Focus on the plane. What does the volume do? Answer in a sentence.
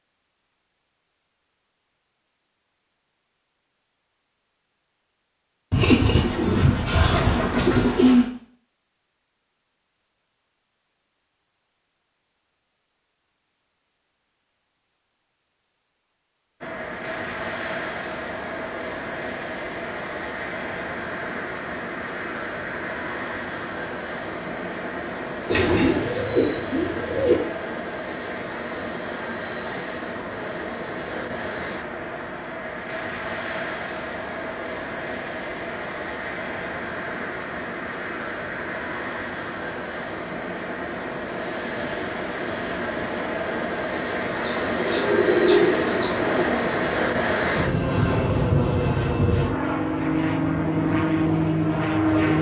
The volume of the plane goes up.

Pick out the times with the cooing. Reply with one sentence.
You can hear the cooing from 5.7 to 8.2 s, from 25.4 to 27.4 s and from 44.4 to 46.8 s.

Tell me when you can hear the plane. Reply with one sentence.
The plane can be heard from 16.6 to 52.3 s.